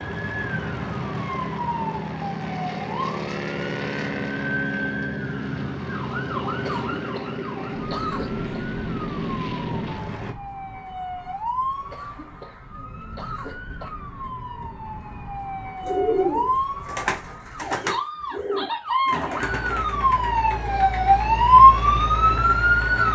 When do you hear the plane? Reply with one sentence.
The plane can be heard from 0.0 to 10.3 s.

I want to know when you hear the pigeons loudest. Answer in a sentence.
The loudest moment of the pigeons is at 16 seconds.